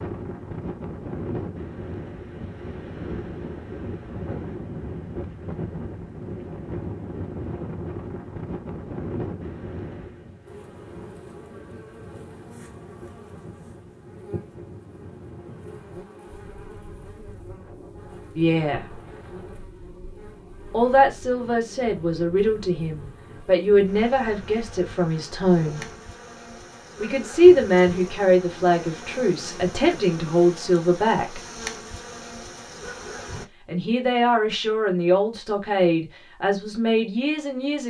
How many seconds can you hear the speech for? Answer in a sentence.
The speech can be heard for 14 seconds in total.